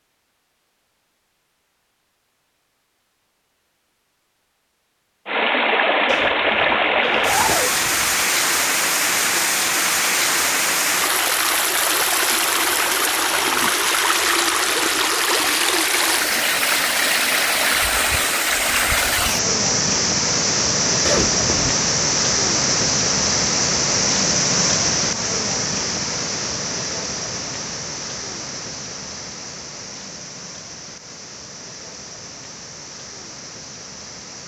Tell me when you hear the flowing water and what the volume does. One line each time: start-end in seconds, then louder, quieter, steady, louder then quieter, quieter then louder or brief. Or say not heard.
5.2-34.4 quieter.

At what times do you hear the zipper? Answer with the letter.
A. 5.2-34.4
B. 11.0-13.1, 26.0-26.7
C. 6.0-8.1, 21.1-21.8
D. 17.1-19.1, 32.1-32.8
C.